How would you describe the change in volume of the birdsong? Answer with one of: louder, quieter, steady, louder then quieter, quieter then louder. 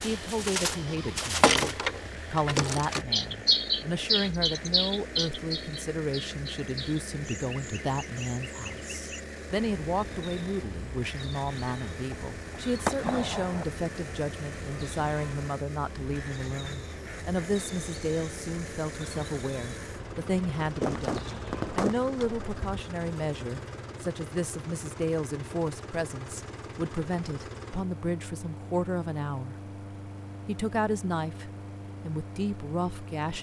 quieter.